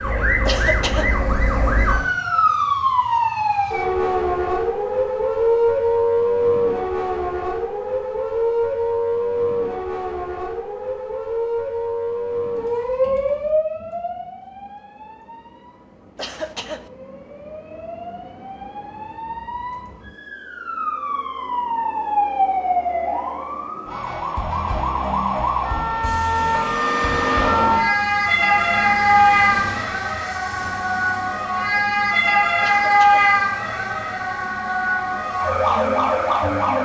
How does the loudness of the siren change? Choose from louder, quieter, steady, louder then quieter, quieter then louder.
quieter then louder.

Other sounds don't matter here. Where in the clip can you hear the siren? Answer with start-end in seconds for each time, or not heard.
0.0-36.8.